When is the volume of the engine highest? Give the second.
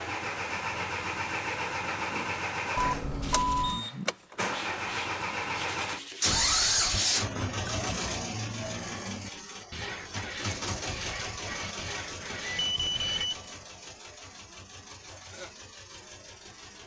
7 s.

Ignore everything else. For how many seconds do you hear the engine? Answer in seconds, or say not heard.
17 s.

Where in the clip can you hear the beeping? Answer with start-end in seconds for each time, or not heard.
2.8-3.9, 6.2-7.0, 12.1-13.5.